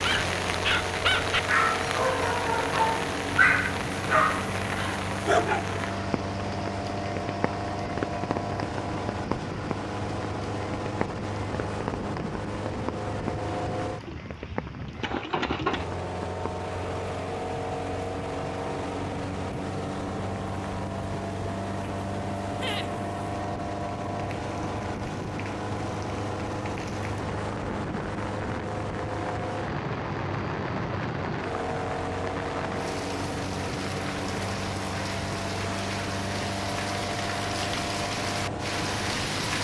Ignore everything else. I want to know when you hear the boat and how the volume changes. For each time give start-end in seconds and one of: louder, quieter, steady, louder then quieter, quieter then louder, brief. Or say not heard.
0.0-39.5 steady.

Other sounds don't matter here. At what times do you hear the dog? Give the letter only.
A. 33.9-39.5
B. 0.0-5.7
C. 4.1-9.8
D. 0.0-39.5
B.